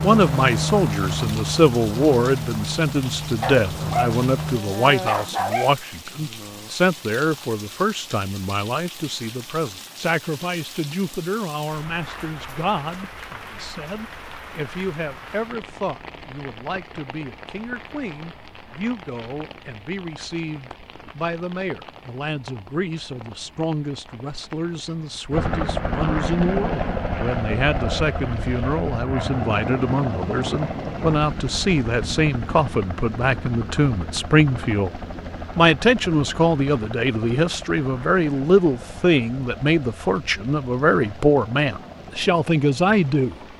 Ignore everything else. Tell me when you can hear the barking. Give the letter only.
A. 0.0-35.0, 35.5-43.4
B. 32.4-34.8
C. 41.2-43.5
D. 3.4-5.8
D.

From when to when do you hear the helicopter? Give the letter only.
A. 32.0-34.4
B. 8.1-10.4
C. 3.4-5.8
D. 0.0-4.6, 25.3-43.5
D.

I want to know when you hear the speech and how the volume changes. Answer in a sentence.
The speech can be heard from 0.0 to 35.0 s, getting quieter then louder; and from 35.5 to 43.4 s, at a steady volume.